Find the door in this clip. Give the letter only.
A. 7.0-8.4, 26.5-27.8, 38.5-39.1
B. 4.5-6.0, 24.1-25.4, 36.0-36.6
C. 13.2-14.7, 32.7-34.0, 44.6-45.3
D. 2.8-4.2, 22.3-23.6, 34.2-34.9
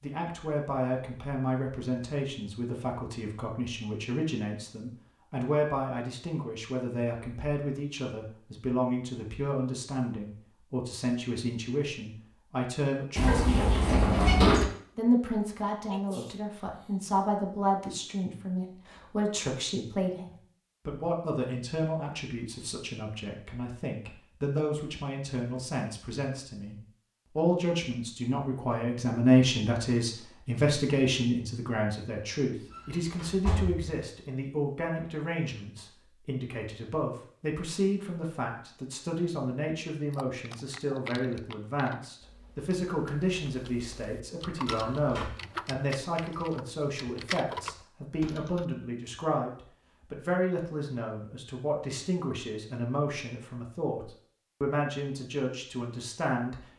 C.